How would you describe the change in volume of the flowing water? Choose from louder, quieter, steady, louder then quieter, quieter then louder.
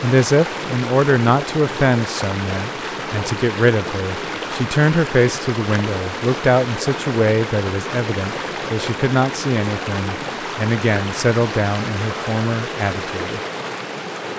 steady.